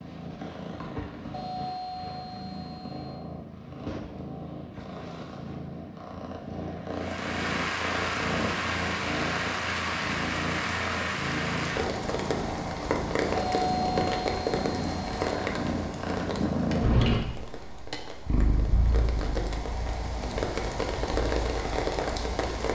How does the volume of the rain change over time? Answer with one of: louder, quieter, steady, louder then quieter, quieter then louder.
quieter then louder.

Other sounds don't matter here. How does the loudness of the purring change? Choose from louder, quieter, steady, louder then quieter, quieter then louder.
louder then quieter.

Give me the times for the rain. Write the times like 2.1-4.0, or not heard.
6.9-22.7.